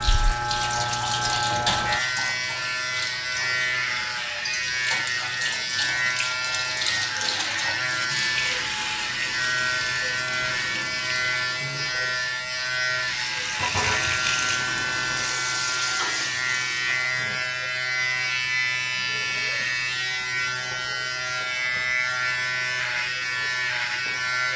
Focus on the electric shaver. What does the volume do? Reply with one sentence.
The loudness of the electric shaver stays about the same.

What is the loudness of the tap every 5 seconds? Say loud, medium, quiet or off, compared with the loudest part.
loud, loud, loud, loud, off.